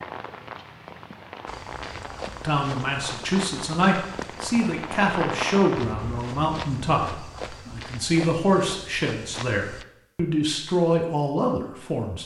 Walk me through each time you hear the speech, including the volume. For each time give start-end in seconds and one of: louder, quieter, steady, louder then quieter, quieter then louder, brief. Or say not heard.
2.4-12.2 steady.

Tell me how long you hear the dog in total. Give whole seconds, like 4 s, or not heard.
not heard.